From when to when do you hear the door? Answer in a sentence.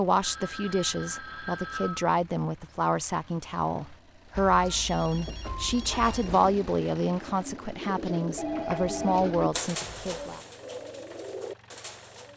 You can't hear the door here.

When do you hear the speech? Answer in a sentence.
The speech can be heard from 0.0 to 10.4 s.